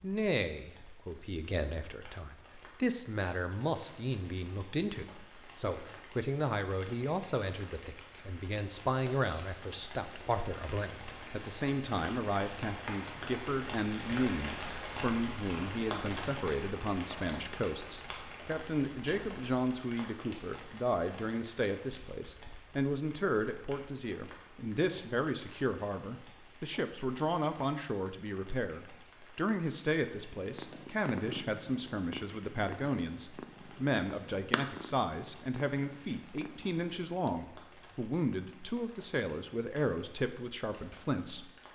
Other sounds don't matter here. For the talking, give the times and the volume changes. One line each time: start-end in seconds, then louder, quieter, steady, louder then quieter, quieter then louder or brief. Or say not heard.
0.0-41.5 steady.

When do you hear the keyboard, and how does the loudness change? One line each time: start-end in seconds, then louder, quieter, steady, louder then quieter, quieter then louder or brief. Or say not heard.
not heard.